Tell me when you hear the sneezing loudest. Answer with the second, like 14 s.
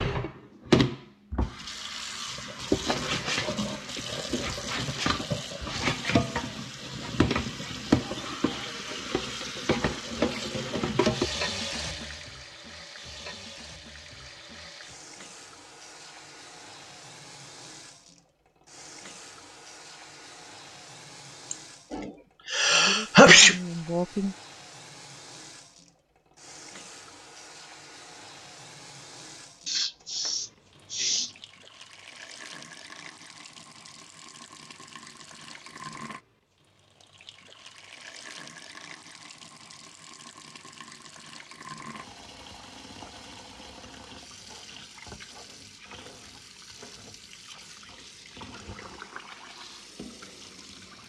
23 s.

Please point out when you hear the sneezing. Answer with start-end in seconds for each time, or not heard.
21.5-23.6, 29.6-31.3.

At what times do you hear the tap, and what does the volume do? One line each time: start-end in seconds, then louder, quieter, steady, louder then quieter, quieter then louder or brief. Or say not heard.
0.0-51.0 quieter.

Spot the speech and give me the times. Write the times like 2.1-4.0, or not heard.
22.7-24.4.